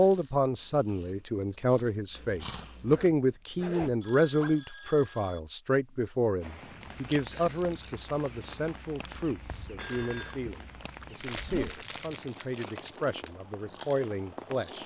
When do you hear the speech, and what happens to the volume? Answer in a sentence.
You can hear the speech from 0.0 to 14.8 s, getting quieter.